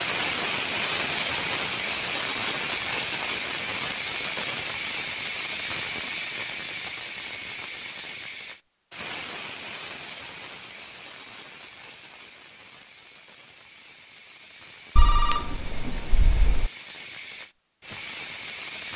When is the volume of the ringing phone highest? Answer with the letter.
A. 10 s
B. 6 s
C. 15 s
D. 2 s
C.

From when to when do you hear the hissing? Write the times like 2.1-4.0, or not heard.
0.0-18.9.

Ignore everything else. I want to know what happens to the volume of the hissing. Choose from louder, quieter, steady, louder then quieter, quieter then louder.
quieter then louder.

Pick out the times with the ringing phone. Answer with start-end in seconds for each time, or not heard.
14.9-16.7.